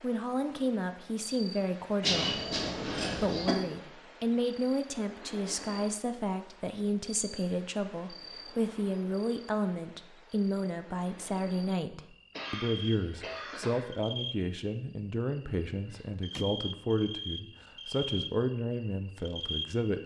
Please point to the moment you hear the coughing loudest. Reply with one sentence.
The volume of the coughing peaks at 2 seconds.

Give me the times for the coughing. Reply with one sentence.
The coughing can be heard from 2.0 to 3.5 s and from 12.3 to 13.9 s.